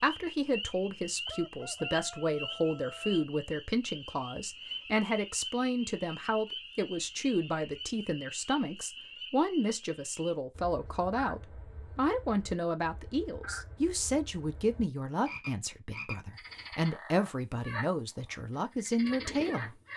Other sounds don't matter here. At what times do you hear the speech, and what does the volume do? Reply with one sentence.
The speech can be heard from 0.0 to 19.8 s, at a steady volume.